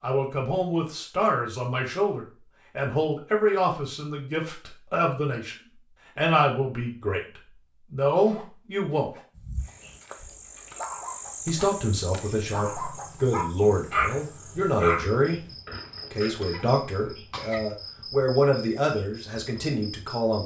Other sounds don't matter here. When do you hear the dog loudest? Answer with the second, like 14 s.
14 s.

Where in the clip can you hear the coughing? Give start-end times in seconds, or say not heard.
16.4-17.6.